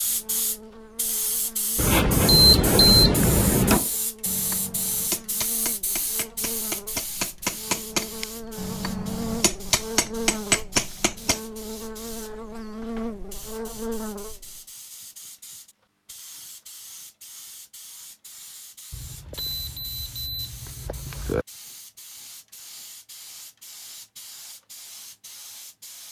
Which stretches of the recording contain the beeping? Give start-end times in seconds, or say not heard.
1.8-3.8, 18.9-21.4.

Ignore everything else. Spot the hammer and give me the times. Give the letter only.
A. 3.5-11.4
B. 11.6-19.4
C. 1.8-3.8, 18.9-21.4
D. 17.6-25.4
A.